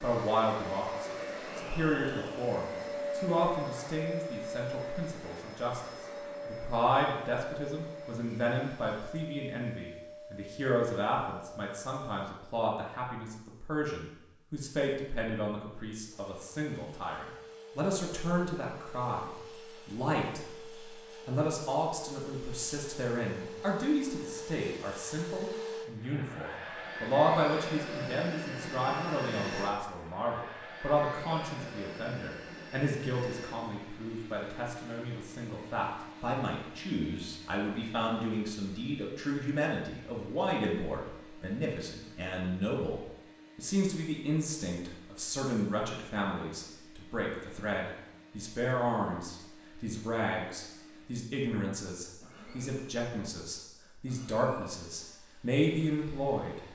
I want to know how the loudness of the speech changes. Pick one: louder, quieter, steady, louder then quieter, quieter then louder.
steady.